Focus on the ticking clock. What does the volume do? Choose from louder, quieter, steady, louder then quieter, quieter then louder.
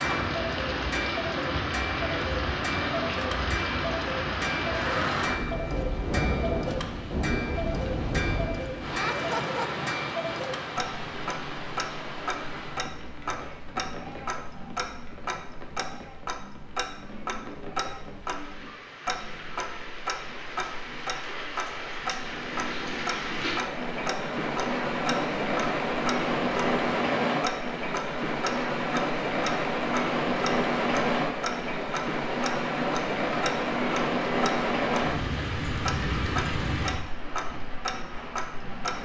steady.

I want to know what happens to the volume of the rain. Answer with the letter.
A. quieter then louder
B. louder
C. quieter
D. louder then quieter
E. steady
A.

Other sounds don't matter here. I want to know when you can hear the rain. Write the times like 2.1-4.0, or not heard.
0.0-39.0.